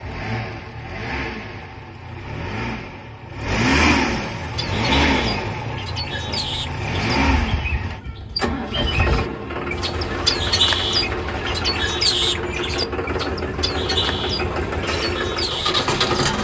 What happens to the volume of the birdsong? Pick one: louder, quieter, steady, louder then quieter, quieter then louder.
louder then quieter.